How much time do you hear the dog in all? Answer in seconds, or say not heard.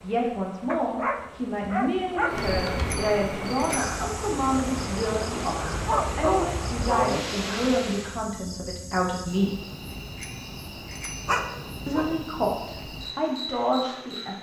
4 s.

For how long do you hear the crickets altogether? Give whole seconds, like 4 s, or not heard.
12 s.